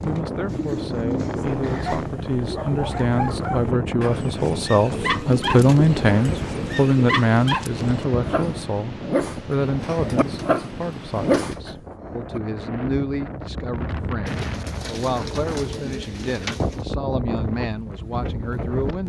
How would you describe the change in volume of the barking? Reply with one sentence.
The loudness of the barking goes up.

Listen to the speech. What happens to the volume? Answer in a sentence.
The loudness of the speech goes up, then down.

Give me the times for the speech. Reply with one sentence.
The speech can be heard from 0.0 to 19.0 s.